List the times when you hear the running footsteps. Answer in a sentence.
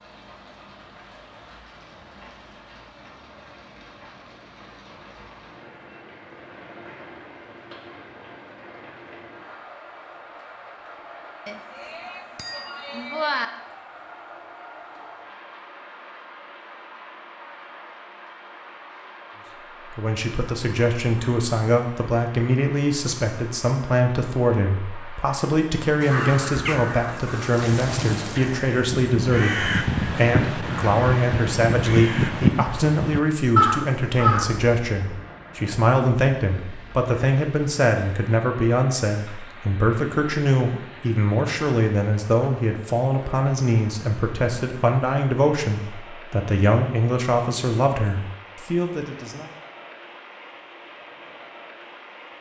You can't hear the running footsteps here.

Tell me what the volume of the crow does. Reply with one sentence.
The loudness of the crow goes up.